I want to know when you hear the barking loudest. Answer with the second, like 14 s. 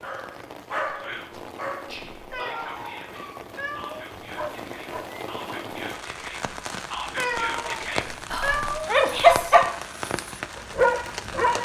9 s.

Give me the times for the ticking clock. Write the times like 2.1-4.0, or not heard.
not heard.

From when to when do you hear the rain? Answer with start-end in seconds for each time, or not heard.
0.0-11.6.